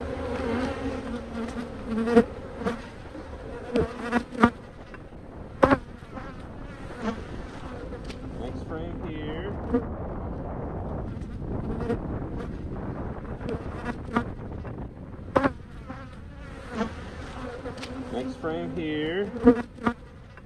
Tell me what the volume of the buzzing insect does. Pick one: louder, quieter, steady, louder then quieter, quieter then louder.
quieter then louder.